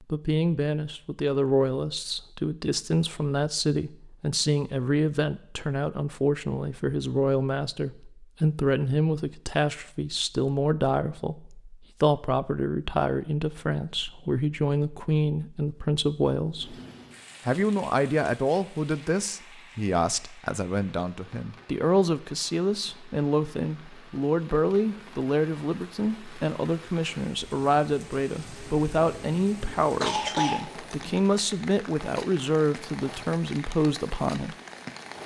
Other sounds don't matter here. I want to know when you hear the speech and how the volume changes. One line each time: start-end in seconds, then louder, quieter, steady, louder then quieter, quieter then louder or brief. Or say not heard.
0.0-16.8 steady
17.4-34.5 steady.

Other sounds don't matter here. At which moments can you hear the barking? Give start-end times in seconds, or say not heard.
not heard.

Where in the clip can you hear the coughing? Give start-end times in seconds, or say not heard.
30.0-31.2.